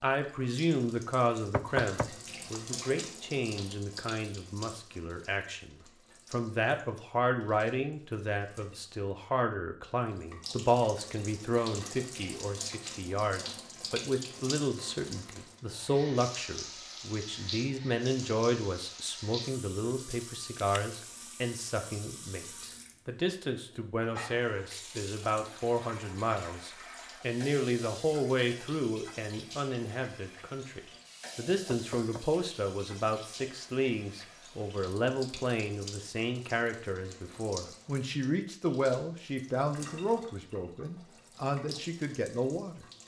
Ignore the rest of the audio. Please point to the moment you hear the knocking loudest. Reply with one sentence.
The loudest moment of the knocking is at 2 seconds.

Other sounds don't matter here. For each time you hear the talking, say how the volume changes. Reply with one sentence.
The talking can be heard from 0.0 to 42.9 s, at a steady volume.